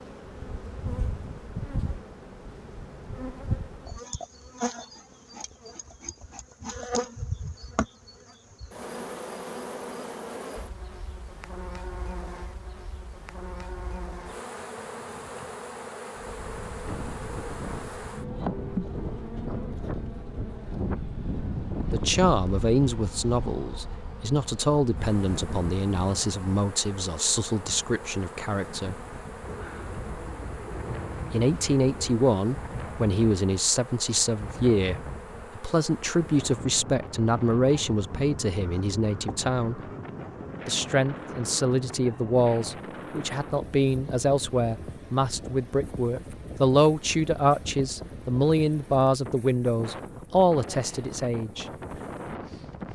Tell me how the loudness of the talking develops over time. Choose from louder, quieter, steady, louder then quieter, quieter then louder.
steady.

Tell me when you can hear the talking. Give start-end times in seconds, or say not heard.
21.9-29.0, 31.3-39.9, 40.6-51.6.